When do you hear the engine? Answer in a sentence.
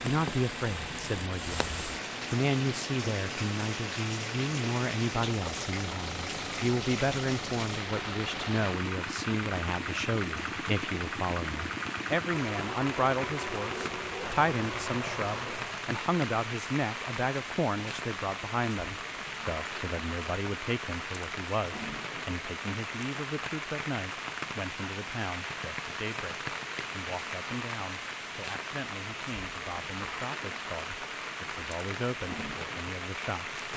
You can hear the engine from 0.0 to 15.9 s.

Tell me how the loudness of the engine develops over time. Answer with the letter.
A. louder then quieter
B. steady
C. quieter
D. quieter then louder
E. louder
B.